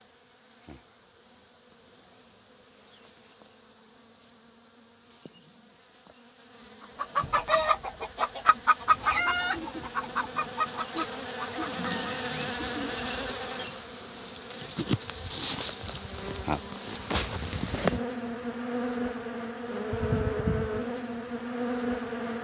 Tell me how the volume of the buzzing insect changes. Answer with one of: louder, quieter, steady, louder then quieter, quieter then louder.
louder.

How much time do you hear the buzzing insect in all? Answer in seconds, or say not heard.
22 s.